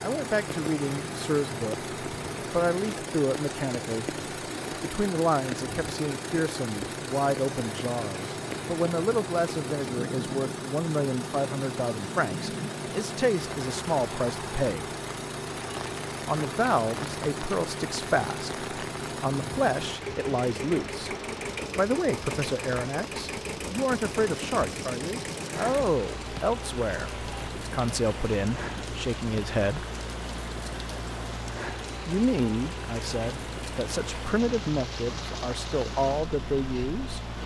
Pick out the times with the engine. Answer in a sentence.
You can hear the engine from 0.0 to 37.4 s.